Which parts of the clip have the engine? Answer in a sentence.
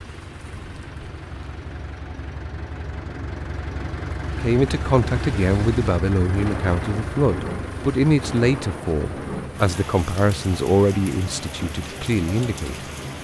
You can hear the engine from 0.0 to 13.1 s.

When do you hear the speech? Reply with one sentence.
You can hear the speech from 4.4 to 12.8 s.